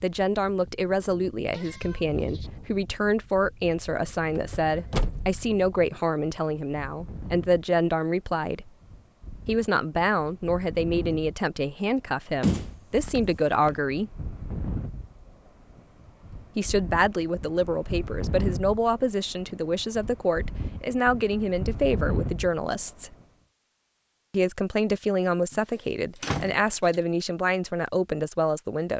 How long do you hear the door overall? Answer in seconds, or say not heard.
3 s.